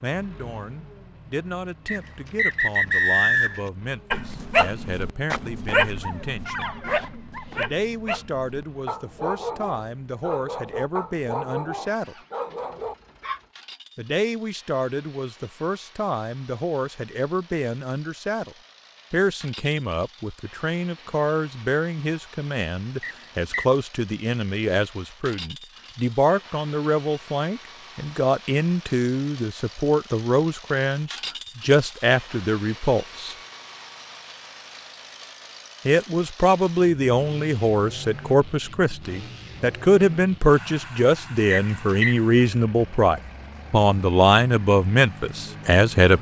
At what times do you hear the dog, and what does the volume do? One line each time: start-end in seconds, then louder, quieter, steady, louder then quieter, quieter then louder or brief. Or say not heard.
4.1-13.4 quieter.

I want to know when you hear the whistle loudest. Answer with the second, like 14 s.
3 s.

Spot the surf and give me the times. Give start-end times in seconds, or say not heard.
not heard.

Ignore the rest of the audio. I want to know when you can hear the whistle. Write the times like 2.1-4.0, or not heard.
1.9-3.7, 23.0-23.6, 41.5-42.1.